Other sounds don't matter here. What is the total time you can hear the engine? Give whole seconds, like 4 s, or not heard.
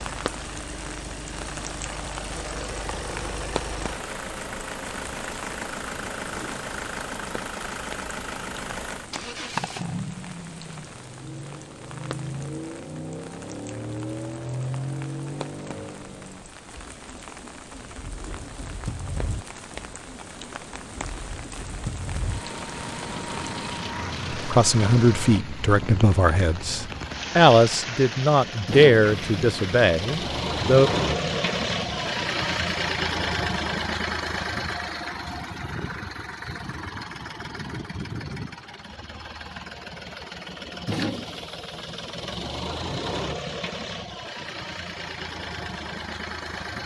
47 s.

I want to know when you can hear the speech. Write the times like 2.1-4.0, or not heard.
24.4-30.9.